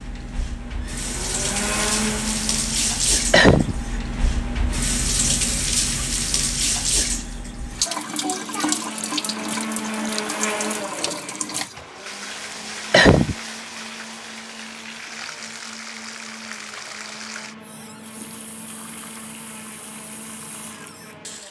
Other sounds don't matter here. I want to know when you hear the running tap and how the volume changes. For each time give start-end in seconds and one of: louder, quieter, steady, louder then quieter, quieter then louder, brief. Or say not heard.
0.0-21.4 quieter.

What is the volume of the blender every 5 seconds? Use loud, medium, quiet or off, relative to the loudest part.
loud, loud, loud, quiet, quiet.